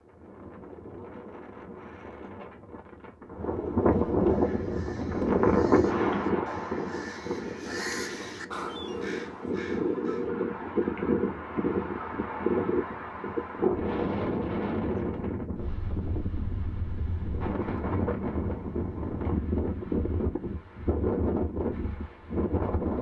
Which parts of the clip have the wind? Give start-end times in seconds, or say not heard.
0.0-22.9.